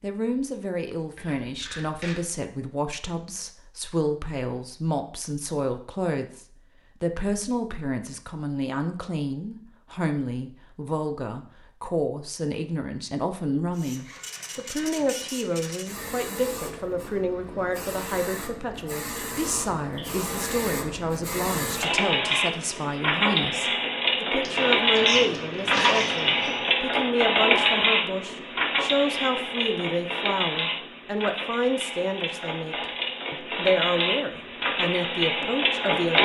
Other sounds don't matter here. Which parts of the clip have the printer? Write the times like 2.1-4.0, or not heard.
13.8-36.2.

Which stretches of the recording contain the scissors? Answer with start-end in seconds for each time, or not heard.
1.1-2.2, 24.4-26.6.